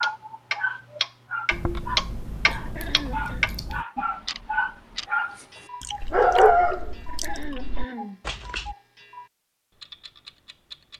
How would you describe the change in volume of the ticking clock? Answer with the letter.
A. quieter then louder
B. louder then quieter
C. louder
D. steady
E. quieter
E.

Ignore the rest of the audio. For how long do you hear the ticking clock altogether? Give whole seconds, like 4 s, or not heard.
11 s.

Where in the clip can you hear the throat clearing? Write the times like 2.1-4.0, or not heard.
2.6-3.5, 7.0-8.2.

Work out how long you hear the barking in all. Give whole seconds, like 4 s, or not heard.
9 s.